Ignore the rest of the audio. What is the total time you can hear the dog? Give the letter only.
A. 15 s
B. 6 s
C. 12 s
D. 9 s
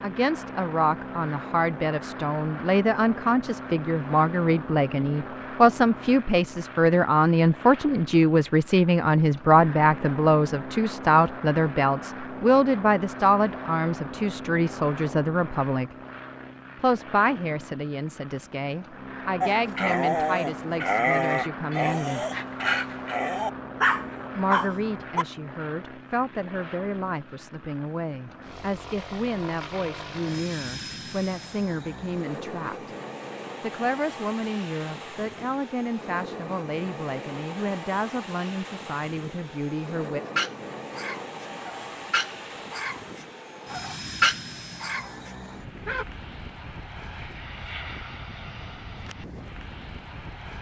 C.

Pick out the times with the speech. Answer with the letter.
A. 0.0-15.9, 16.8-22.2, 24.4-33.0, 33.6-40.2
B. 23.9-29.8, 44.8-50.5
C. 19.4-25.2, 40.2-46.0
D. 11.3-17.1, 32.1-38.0
A.